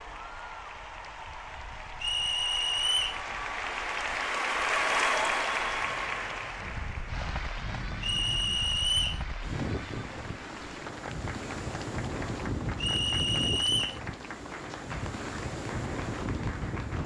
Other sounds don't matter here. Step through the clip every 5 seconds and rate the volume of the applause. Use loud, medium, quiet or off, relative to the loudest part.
loud, loud, medium, medium.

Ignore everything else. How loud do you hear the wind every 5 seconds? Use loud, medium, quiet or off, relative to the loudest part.
quiet, medium, loud, loud.